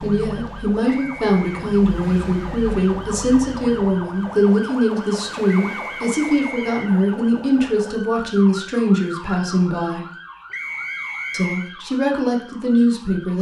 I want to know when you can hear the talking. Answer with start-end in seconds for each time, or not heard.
0.0-10.1, 11.3-13.3.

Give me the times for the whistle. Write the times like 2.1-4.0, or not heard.
0.9-1.4, 5.6-7.0, 10.5-11.7.